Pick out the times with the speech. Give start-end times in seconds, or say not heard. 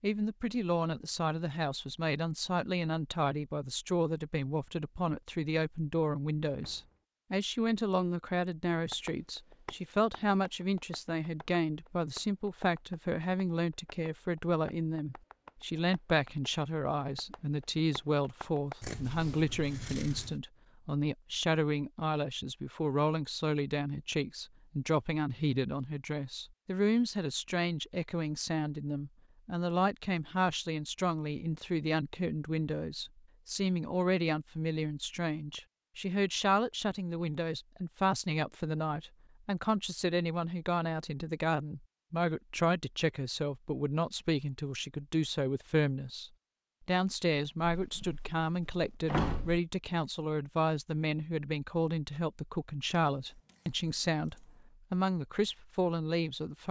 0.0-56.6.